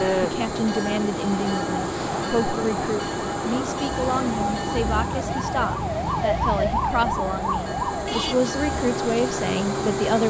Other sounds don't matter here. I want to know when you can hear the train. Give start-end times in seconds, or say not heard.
0.0-10.2.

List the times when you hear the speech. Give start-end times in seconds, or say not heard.
0.2-10.2.